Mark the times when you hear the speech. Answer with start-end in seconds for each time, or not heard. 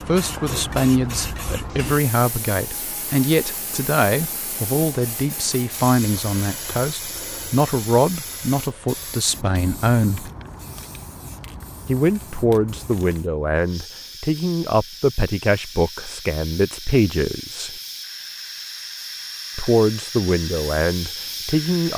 0.1-10.3, 11.8-17.7, 19.6-21.9.